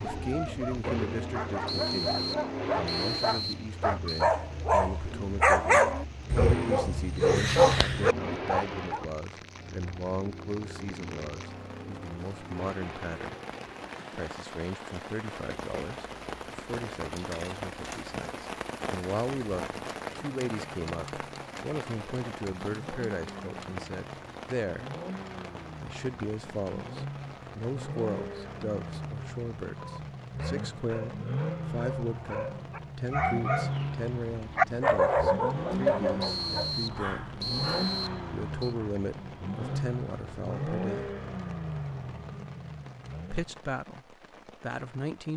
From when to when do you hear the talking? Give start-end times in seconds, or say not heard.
0.0-13.3, 14.2-24.9, 25.8-37.4, 38.3-41.1, 43.3-45.3.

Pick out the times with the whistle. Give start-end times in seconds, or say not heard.
1.6-4.3, 36.2-38.8.